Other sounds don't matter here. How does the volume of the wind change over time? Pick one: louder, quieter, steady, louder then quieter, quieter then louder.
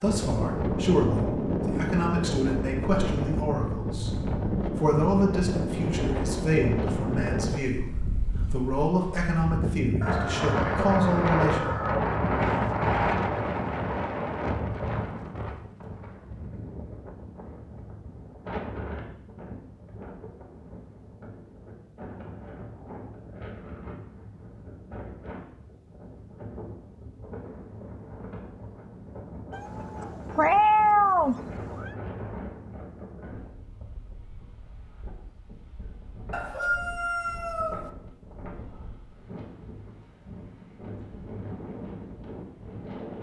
quieter.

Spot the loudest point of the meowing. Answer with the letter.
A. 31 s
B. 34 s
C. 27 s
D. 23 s
A.